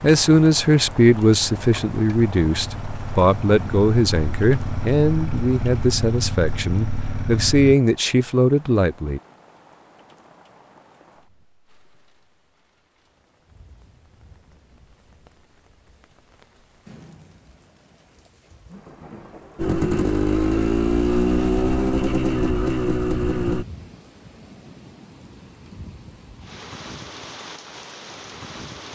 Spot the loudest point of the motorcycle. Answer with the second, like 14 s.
21 s.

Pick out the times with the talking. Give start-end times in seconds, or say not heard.
0.0-9.2.